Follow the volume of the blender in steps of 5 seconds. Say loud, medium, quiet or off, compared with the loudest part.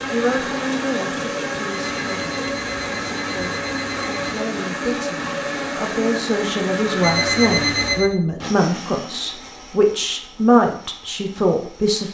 loud, loud, quiet.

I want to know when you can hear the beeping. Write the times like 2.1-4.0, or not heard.
1.6-4.2, 7.0-8.2.